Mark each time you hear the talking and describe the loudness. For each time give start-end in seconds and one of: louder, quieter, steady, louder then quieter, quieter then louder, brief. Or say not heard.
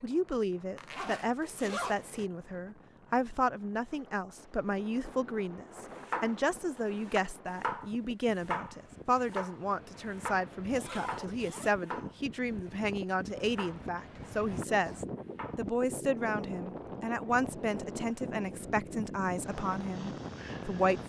0.0-21.0 steady.